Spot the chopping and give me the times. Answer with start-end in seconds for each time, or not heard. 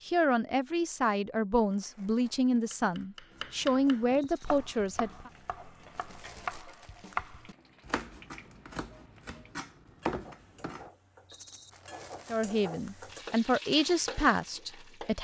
2.6-10.9.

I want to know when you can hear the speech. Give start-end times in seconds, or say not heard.
0.1-5.3, 12.3-15.1.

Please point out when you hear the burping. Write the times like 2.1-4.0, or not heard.
not heard.